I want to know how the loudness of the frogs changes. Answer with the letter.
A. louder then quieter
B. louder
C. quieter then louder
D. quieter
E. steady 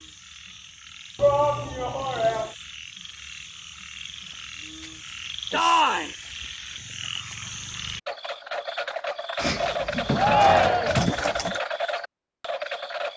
B.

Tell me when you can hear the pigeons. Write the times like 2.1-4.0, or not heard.
9.3-11.6.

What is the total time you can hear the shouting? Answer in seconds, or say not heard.
3 s.